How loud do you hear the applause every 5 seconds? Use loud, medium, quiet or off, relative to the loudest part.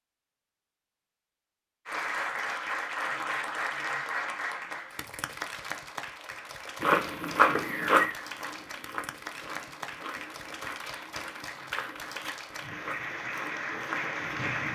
loud, medium, loud.